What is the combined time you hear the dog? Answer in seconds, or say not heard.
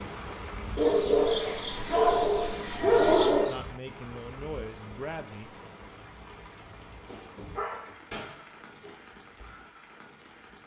5 s.